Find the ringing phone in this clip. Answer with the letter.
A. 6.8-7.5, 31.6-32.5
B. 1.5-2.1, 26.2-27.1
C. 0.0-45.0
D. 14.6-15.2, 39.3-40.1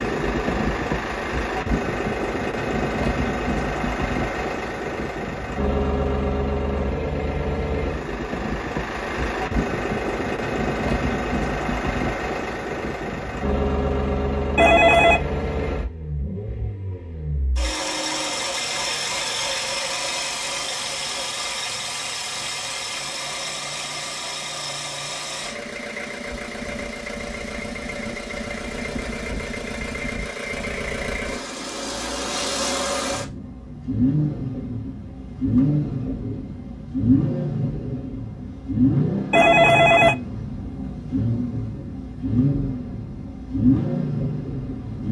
D.